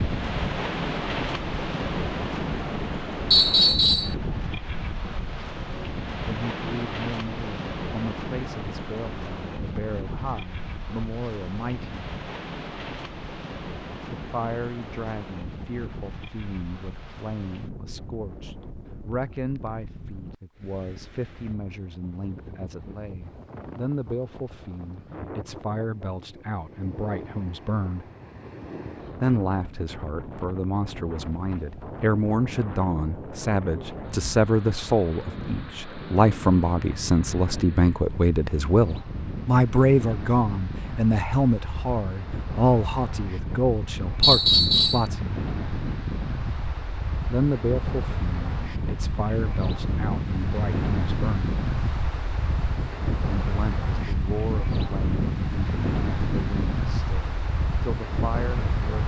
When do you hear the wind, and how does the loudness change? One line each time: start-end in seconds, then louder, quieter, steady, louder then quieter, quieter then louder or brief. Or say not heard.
0.0-59.0 quieter then louder.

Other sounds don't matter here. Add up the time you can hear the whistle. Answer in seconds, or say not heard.
2 s.